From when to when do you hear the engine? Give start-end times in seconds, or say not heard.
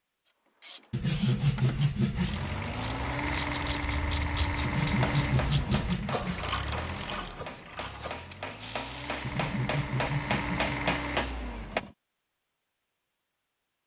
2.1-11.9.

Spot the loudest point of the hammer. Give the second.
11 s.